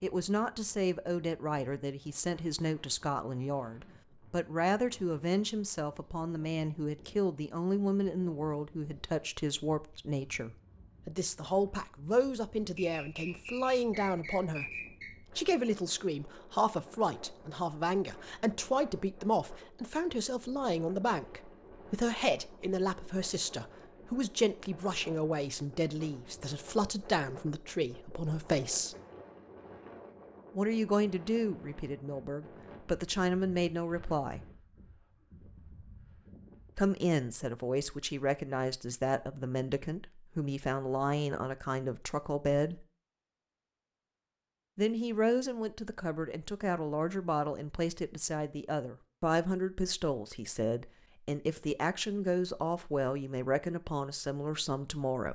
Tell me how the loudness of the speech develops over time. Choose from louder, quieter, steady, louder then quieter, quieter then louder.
steady.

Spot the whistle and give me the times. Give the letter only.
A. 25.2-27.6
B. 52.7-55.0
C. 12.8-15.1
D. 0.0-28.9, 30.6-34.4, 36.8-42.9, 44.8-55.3
C.